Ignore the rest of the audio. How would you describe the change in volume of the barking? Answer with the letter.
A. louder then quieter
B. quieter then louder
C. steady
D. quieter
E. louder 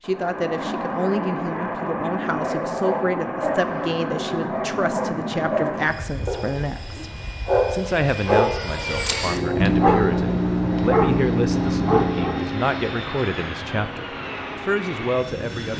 E.